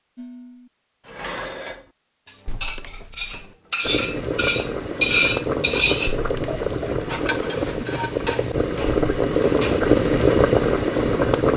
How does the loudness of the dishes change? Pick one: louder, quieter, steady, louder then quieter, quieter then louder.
louder then quieter.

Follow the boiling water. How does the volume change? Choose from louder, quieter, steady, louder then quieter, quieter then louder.
louder.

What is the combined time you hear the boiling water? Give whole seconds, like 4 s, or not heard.
8 s.